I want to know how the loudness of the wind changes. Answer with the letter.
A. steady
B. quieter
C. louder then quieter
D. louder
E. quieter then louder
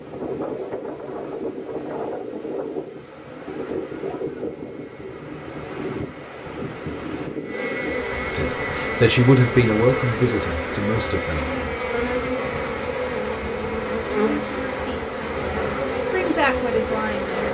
A.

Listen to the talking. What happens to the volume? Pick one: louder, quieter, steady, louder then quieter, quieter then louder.
quieter.